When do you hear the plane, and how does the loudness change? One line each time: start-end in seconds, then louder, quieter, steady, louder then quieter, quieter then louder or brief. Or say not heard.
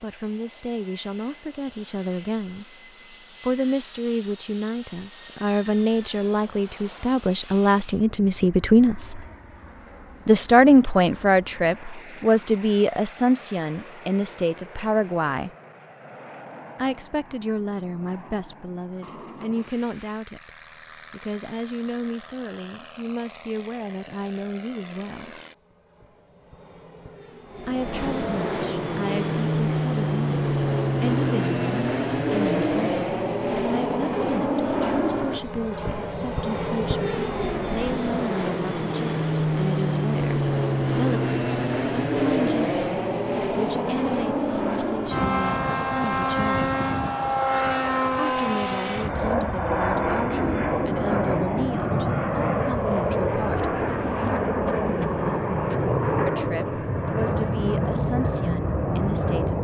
0.0-59.5 louder.